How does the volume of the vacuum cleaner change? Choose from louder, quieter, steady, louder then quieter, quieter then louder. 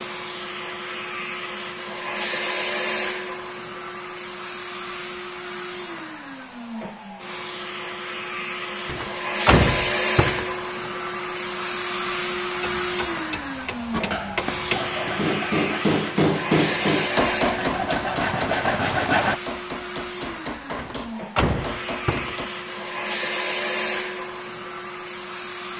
steady.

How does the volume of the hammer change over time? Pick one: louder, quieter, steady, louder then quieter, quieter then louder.
louder then quieter.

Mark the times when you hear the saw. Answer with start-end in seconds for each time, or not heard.
13.9-19.4.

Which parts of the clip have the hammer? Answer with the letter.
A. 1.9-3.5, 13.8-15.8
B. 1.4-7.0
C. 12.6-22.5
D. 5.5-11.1
C.